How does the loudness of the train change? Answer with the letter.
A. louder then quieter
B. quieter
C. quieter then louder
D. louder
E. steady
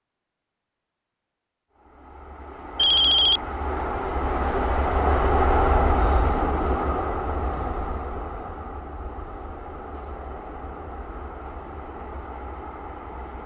A.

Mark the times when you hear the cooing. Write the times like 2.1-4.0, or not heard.
not heard.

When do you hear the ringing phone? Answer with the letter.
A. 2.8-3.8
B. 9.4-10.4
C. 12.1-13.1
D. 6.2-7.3
A.